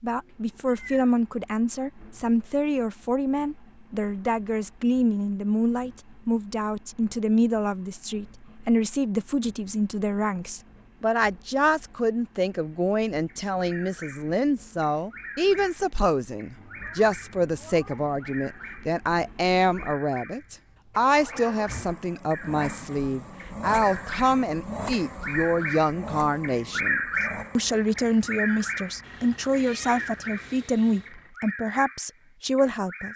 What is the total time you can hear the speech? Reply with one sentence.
You can hear the speech for 33 seconds altogether.